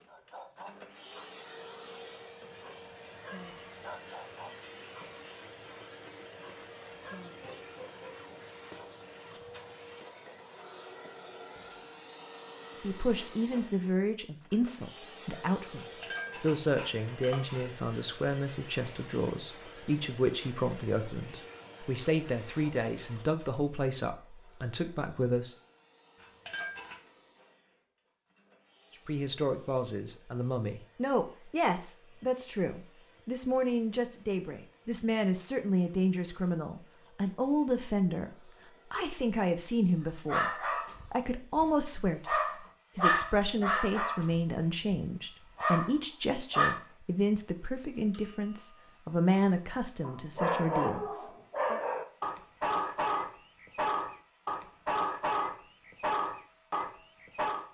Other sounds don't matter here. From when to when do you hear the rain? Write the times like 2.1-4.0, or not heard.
not heard.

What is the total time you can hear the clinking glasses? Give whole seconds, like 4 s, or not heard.
3 s.